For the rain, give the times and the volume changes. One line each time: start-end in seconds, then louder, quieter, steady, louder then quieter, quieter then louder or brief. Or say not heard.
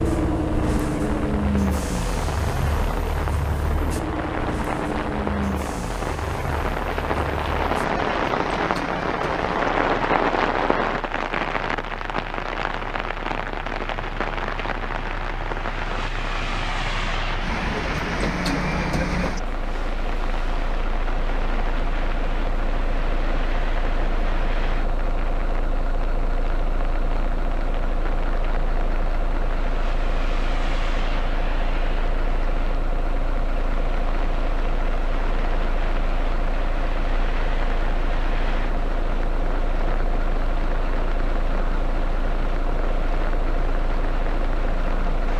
0.0-45.3 quieter.